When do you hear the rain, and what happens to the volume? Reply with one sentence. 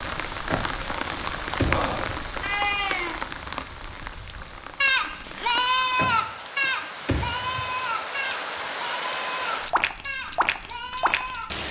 The rain can be heard from 0.0 to 11.6 s, getting quieter then louder.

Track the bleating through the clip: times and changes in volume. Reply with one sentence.
The bleating can be heard from 2.4 to 11.5 s, getting louder then quieter.